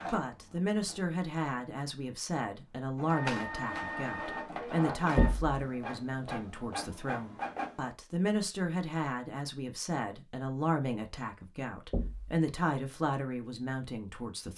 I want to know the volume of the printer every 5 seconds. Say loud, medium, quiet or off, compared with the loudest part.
loud, loud, off.